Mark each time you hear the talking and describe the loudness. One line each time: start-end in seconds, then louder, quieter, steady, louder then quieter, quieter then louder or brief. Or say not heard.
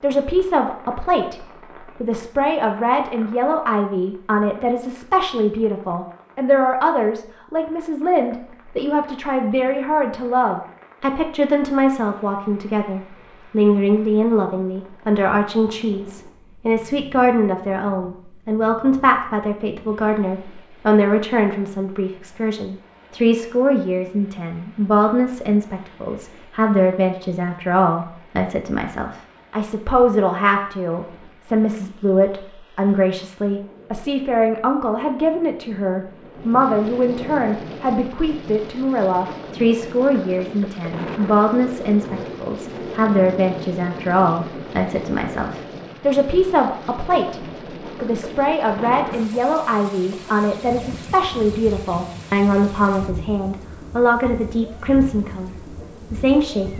0.0-56.7 steady.